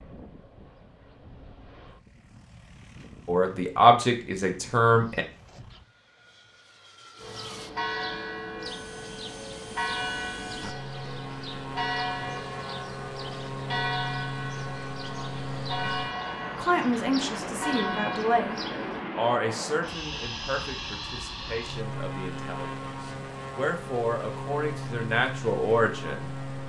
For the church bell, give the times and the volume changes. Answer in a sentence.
You can hear the church bell from 7.2 to 19.1 s, at a steady volume.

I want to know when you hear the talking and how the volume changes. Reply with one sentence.
The talking can be heard briefly from 3.2 to 5.2 s; and from 16.6 to 26.6 s, getting quieter then louder.